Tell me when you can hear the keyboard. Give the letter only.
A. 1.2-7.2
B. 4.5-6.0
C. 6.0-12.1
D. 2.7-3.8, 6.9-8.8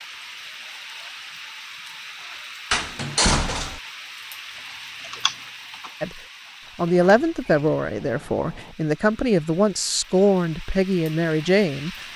B.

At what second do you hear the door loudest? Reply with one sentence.
The loudest moment of the door is at 3 seconds.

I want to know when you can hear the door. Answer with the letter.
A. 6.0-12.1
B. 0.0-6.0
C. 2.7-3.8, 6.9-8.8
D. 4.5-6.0
C.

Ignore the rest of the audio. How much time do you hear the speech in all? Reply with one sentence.
You can hear the speech for 6 seconds altogether.